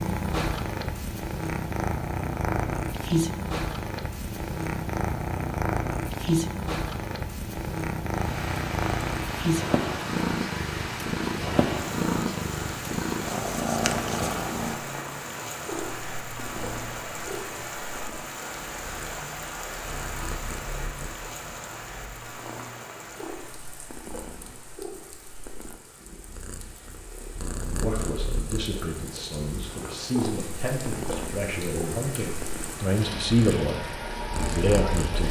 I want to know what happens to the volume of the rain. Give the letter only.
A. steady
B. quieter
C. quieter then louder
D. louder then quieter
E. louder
C.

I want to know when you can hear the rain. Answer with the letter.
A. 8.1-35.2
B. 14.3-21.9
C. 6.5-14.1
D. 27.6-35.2
A.